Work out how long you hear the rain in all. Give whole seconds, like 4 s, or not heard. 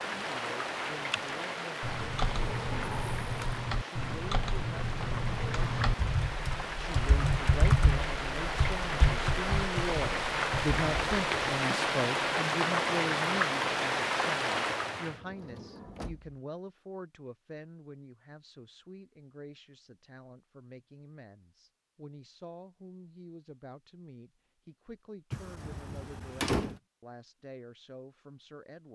15 s.